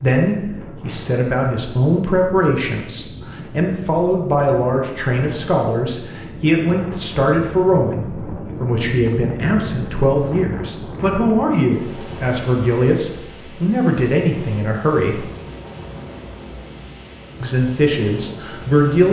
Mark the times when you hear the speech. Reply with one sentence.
The speech can be heard from 0.0 to 15.2 s and from 17.4 to 19.0 s.